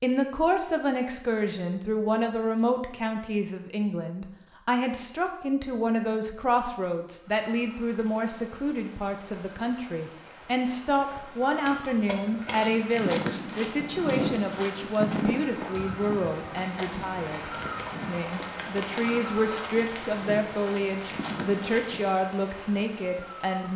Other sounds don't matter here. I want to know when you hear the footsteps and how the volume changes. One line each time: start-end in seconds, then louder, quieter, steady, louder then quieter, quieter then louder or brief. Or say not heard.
12.5-22.1 quieter.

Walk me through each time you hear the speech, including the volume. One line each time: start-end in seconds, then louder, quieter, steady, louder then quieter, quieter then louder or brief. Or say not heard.
0.0-23.7 steady.